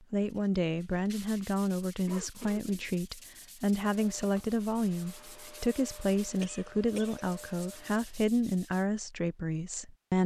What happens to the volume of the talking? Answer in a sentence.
The volume of the talking stays about the same.